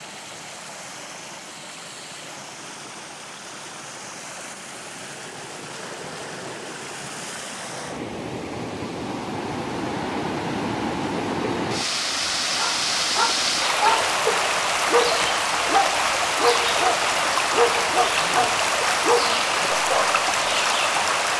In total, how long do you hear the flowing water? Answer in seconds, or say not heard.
21 s.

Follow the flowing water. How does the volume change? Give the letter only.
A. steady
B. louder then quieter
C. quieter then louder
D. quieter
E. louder
E.